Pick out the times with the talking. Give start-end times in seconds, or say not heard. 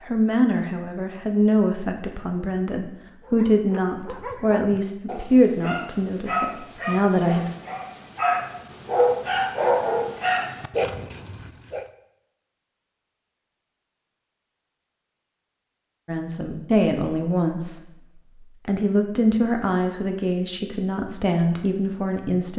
0.0-7.6, 16.1-22.5.